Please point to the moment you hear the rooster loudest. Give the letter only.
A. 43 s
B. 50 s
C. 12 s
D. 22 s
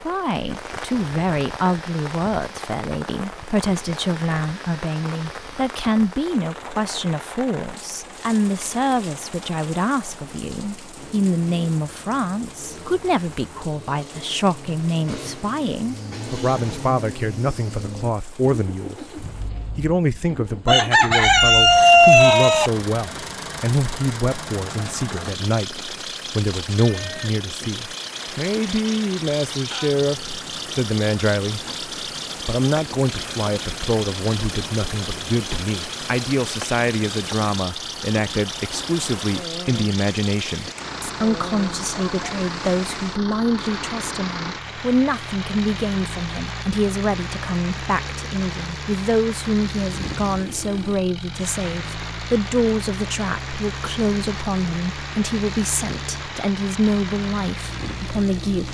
D.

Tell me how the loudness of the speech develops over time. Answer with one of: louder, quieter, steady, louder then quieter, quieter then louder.
steady.